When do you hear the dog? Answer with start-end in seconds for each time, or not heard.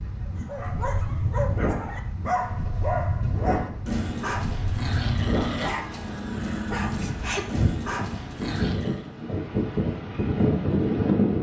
0.2-9.1.